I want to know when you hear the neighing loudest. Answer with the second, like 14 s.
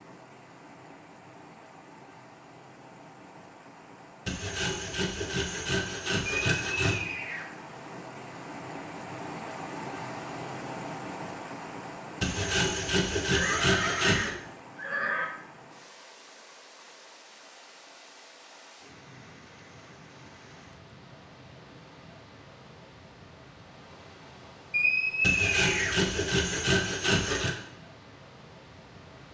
25 s.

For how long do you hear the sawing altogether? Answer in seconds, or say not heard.
7 s.